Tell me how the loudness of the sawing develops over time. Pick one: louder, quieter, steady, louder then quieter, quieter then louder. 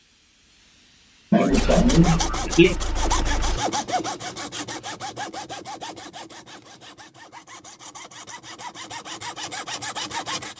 quieter then louder.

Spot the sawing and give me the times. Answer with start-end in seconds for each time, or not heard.
1.4-10.5.